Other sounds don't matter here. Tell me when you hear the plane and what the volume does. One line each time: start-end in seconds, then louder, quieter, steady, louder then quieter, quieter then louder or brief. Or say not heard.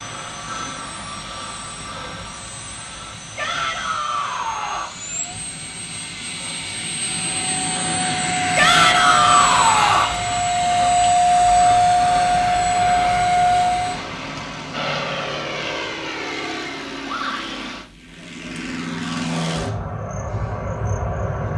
0.0-21.5 louder then quieter.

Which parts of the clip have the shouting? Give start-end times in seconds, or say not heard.
3.4-4.9, 8.6-10.2, 17.1-17.6.